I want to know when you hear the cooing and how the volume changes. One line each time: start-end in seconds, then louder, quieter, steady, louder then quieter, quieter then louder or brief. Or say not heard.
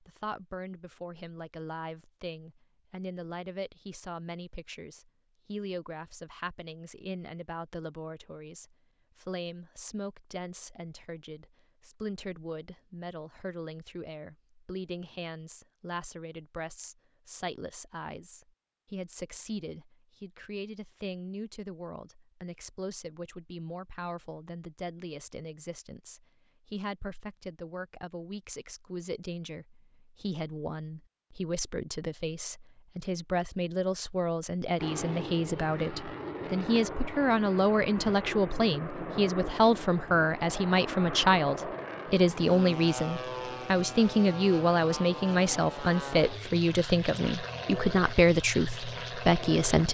not heard.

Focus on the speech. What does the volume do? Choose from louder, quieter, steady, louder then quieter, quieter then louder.
louder.